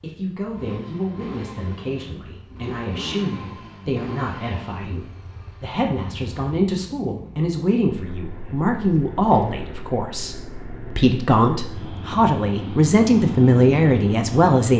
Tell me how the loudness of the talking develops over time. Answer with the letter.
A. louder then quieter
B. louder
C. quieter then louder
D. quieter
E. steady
B.